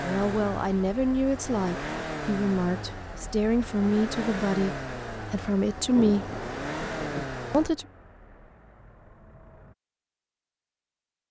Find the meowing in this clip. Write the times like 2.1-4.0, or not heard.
not heard.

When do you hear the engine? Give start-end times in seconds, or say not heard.
0.0-9.8.